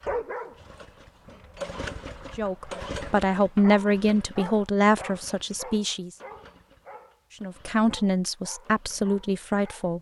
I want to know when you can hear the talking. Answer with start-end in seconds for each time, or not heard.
2.4-6.1, 7.4-9.9.